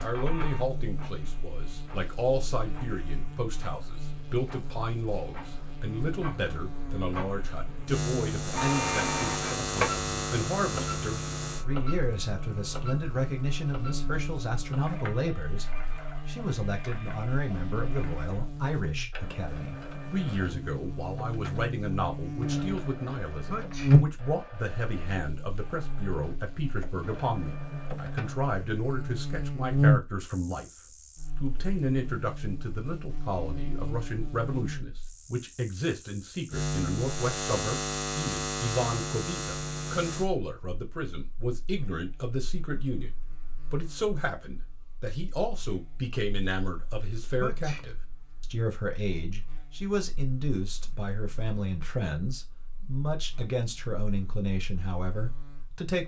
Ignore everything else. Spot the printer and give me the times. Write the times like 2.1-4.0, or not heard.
0.0-28.5.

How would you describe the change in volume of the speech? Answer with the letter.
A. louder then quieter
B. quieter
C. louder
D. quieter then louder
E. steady
E.